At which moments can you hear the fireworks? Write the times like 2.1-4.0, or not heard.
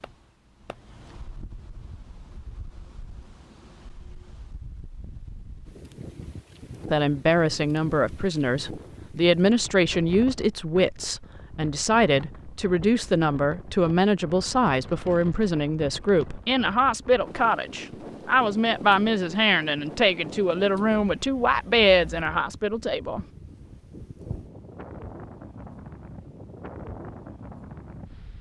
0.0-0.8.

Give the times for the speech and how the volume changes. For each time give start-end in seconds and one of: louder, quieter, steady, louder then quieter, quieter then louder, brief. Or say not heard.
6.9-23.2 steady.